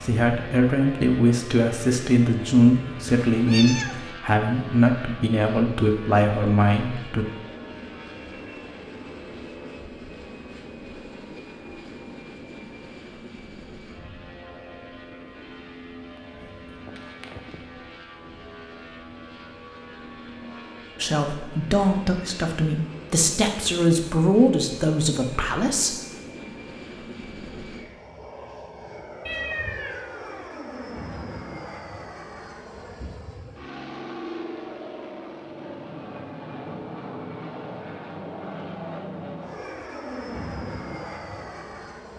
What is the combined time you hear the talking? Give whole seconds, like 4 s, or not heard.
12 s.